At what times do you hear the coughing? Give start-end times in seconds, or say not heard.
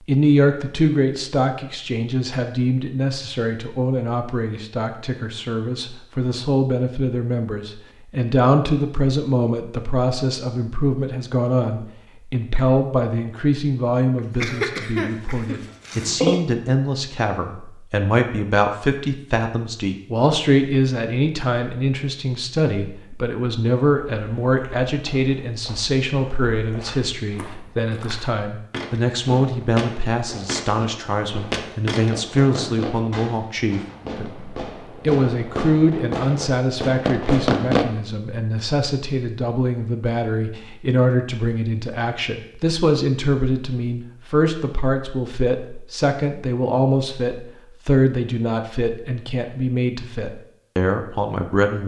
14.2-16.2.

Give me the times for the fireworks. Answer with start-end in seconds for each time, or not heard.
29.1-37.9.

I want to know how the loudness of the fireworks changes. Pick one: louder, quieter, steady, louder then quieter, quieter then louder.
louder.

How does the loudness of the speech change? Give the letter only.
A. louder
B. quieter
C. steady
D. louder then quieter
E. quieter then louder
C.